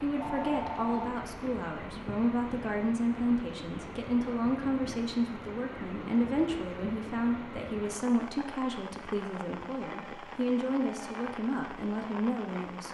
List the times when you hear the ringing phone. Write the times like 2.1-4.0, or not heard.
0.1-1.1, 9.9-11.3.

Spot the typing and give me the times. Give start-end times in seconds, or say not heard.
not heard.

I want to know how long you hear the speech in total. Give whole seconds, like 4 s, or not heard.
13 s.